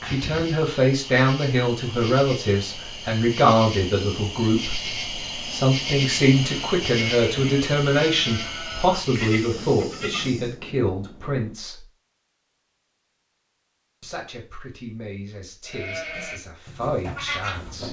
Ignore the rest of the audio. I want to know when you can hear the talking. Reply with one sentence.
You can hear the talking from 0.1 to 11.8 s and from 14.0 to 17.8 s.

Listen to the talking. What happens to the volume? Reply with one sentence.
The volume of the talking goes down.